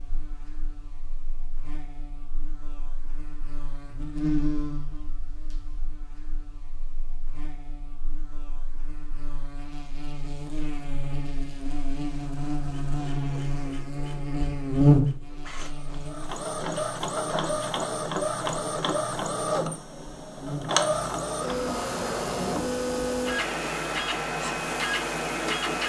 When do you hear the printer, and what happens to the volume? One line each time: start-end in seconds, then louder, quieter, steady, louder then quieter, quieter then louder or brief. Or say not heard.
12.6-25.8 louder.